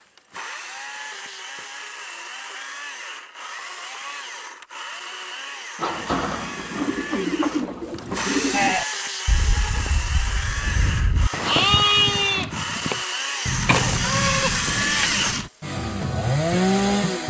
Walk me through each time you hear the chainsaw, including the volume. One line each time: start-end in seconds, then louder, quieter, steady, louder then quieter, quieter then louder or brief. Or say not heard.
0.0-17.2 louder.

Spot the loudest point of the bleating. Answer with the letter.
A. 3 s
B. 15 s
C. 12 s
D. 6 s
C.